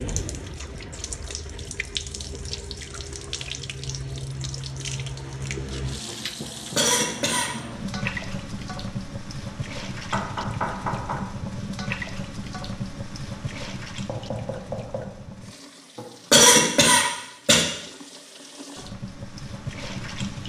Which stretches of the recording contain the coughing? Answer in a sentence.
The coughing can be heard from 6.4 to 7.5 s and from 15.9 to 17.6 s.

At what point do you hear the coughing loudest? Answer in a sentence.
The volume of the coughing peaks at 16 seconds.